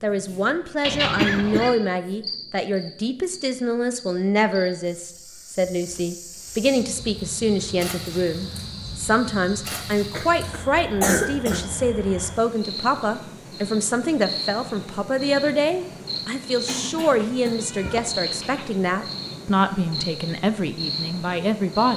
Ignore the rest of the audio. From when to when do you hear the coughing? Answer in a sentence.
The coughing can be heard from 1.1 to 1.8 s, from 9.7 to 11.7 s and from 16.6 to 17.7 s.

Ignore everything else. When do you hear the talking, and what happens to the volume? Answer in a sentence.
The talking can be heard from 0.0 to 21.9 s, at a steady volume.